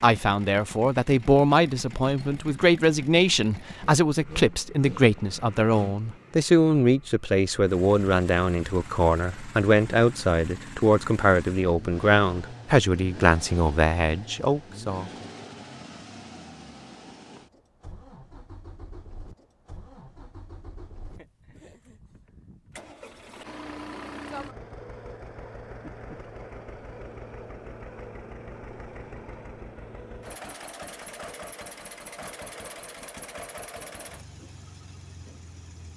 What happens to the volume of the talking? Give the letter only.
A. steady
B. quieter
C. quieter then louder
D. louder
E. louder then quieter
A.